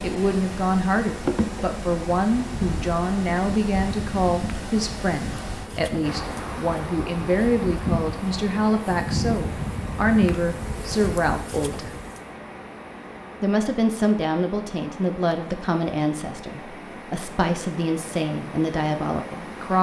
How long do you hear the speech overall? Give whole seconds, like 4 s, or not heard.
18 s.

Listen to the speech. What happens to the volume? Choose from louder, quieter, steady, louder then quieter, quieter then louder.
steady.